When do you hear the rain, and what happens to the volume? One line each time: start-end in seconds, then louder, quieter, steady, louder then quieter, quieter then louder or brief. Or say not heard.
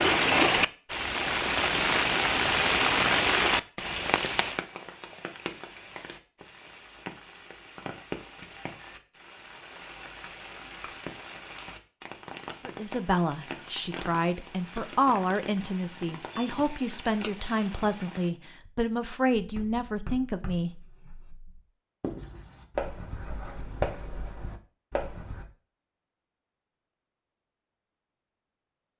0.0-18.3 quieter.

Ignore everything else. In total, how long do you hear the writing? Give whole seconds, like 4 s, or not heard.
6 s.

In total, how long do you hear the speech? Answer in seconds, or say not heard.
8 s.